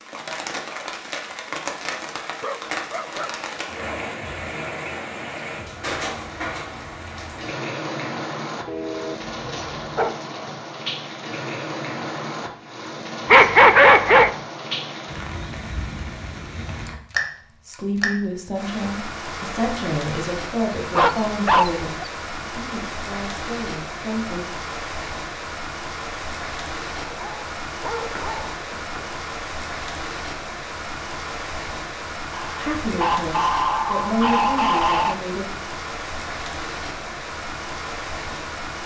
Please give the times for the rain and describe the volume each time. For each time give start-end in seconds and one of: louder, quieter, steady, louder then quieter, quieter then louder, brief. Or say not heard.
0.0-38.8 steady.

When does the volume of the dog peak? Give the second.
14 s.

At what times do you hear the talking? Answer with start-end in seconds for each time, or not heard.
17.6-24.4, 32.5-35.5.